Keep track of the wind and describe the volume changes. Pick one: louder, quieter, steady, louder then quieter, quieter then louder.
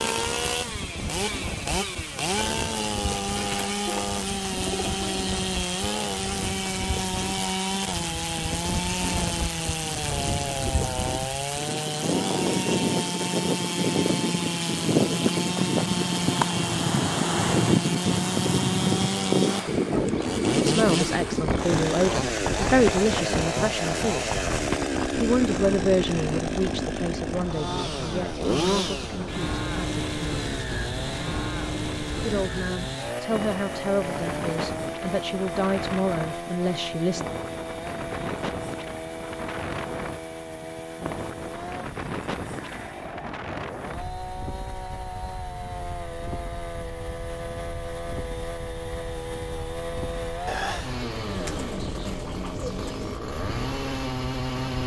louder then quieter.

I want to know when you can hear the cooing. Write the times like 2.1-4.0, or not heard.
3.4-5.2, 20.1-21.6, 50.5-53.2.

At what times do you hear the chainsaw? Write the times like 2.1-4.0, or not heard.
0.0-54.8.